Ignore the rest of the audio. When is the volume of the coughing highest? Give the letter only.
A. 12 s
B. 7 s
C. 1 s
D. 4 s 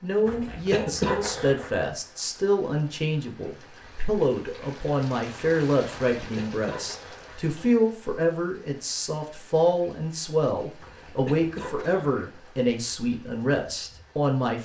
C.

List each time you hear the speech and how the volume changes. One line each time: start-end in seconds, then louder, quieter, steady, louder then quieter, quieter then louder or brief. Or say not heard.
0.0-14.6 steady.